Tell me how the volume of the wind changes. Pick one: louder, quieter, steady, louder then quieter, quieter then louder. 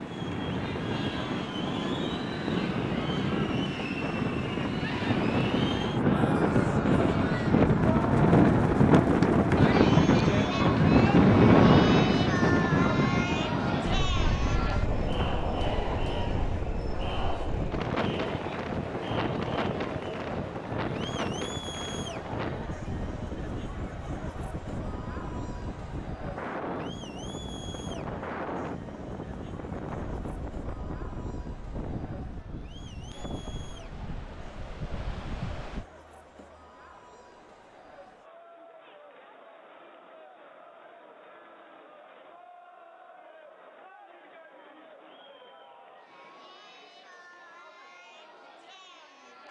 louder then quieter.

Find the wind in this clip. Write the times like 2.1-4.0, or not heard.
0.0-35.9.